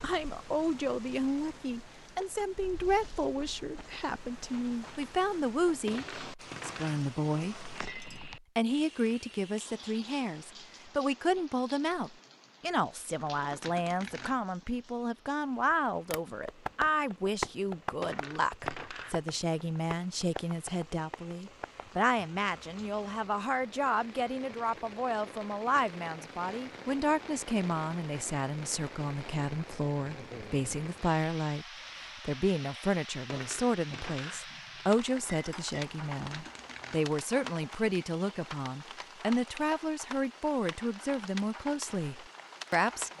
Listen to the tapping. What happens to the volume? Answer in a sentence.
The volume of the tapping goes down.